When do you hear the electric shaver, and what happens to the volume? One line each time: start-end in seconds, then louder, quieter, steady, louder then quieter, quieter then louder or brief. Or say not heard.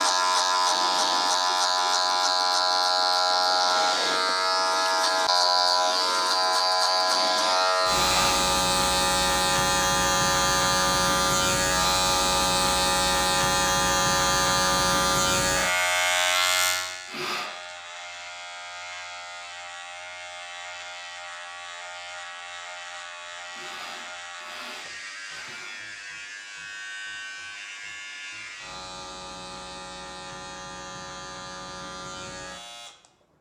0.0-33.3 quieter.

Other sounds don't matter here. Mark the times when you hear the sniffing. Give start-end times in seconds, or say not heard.
7.9-8.4, 16.9-17.5, 23.4-25.8.